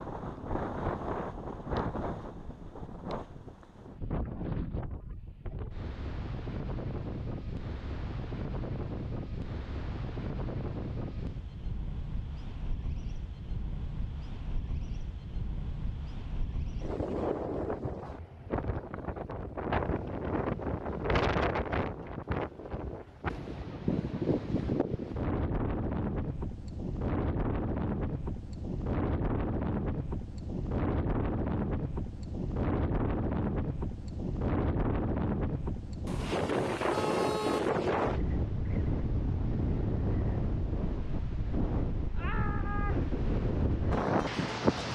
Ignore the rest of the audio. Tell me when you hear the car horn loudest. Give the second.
37 s.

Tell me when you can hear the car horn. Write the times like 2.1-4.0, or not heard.
36.0-37.7.